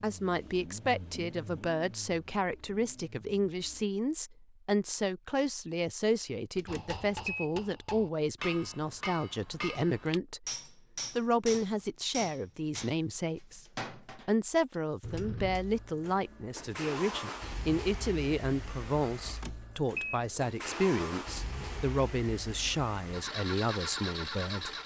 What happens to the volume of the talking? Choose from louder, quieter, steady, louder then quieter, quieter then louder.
steady.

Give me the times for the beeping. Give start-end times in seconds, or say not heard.
6.5-7.5, 19.2-20.2.